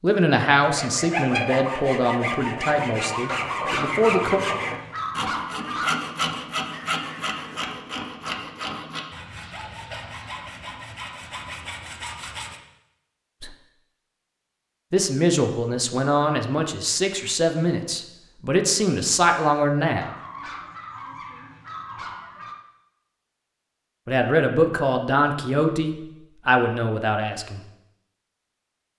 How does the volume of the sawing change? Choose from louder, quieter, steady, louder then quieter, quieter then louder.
quieter.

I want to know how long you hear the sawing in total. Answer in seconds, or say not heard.
12 s.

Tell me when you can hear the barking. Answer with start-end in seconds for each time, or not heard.
3.2-6.0, 20.0-22.6.